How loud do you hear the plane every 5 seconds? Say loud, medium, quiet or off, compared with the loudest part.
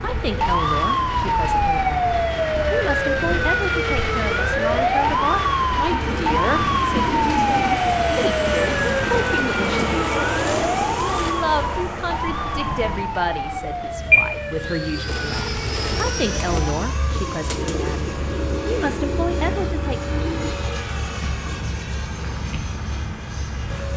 medium, loud, loud, medium, medium.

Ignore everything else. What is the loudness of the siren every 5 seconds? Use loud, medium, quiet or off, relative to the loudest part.
loud, loud, medium, quiet, quiet.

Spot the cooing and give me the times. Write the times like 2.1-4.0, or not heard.
5.9-11.3, 15.1-20.5.